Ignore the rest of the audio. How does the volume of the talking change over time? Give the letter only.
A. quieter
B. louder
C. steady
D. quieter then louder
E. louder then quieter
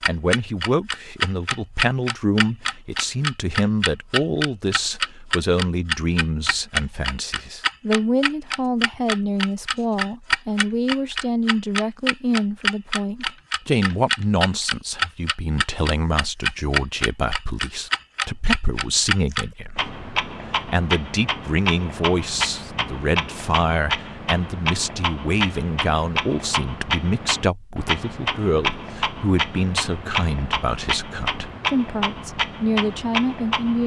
C.